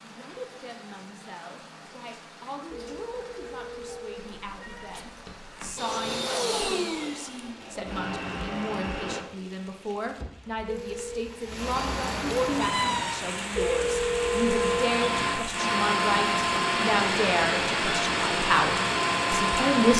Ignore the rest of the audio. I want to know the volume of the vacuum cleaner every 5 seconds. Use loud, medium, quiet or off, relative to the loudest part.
off, medium, medium, loud.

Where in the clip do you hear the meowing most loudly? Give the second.
13 s.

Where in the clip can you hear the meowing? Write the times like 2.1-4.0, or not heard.
4.4-5.6, 11.8-13.2.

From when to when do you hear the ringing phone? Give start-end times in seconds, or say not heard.
2.7-4.2, 10.7-11.1, 13.6-14.8.